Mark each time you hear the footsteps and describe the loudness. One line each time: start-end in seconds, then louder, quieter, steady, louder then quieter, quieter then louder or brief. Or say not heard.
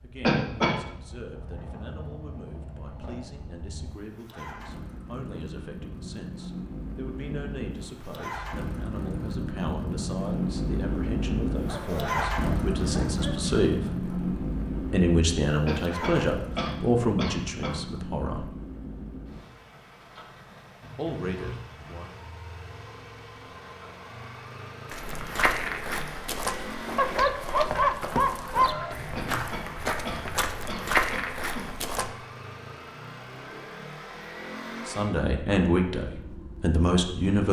24.9-32.1 quieter then louder.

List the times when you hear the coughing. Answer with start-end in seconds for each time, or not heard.
0.2-0.8, 15.7-17.8, 29.1-31.6.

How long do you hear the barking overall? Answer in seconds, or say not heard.
4 s.